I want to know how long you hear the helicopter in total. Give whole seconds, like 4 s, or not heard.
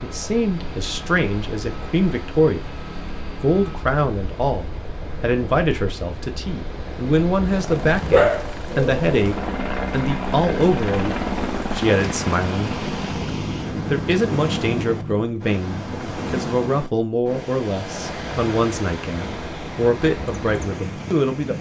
15 s.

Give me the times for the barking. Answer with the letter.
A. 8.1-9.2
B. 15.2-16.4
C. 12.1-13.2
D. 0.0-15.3
A.